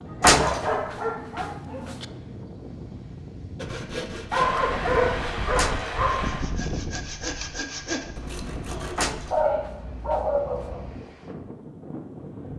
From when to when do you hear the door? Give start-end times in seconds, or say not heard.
0.2-2.0, 5.5-6.0, 8.9-10.2.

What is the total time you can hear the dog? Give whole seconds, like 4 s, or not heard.
6 s.